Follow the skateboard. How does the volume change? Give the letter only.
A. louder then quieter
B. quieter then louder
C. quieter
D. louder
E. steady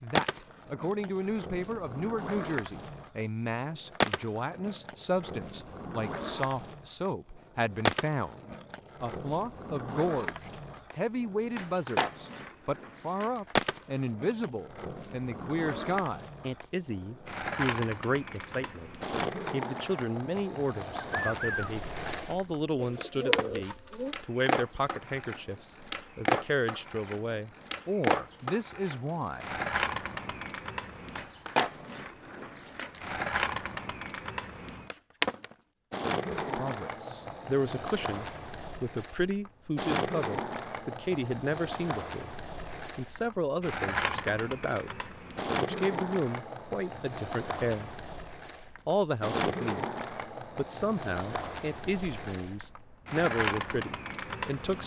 E.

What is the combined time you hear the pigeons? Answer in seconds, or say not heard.
3 s.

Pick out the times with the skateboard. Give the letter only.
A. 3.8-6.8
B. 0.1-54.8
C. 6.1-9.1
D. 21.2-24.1
B.